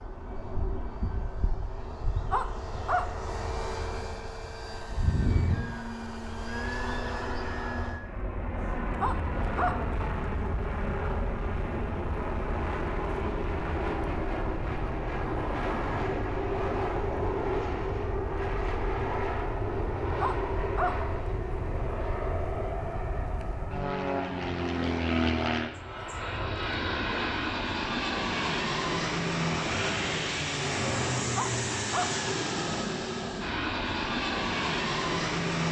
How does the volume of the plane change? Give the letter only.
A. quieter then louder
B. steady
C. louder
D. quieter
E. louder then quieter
C.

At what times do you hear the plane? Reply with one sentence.
You can hear the plane from 0.0 to 35.6 s.